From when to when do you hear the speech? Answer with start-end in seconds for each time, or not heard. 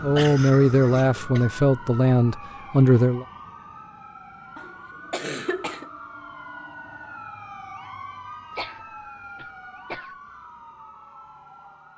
0.0-3.2.